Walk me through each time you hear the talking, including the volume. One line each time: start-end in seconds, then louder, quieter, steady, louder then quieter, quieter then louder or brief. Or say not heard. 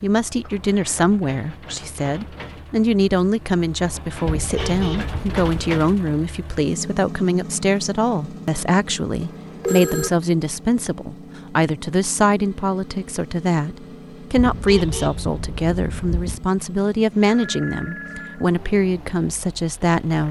0.0-20.2 steady.